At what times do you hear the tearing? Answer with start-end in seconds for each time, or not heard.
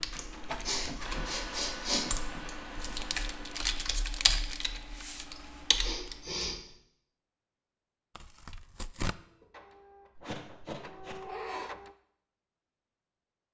3.1-4.7, 8.2-9.2.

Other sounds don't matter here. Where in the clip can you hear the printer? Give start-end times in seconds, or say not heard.
0.0-3.6, 9.2-11.9.